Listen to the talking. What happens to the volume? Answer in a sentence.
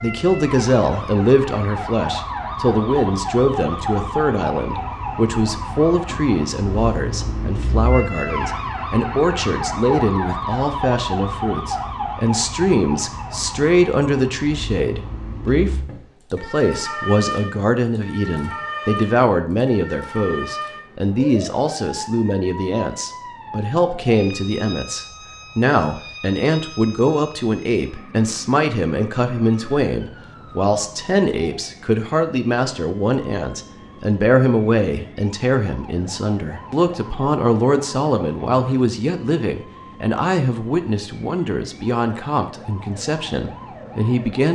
The volume of the talking stays about the same.